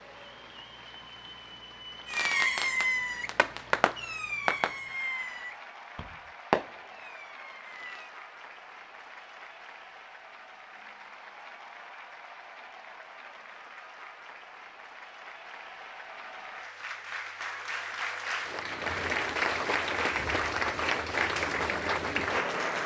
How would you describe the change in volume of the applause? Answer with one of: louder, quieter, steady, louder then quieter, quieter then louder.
louder.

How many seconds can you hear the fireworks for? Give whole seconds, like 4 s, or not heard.
6 s.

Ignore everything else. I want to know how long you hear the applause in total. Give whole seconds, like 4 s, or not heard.
23 s.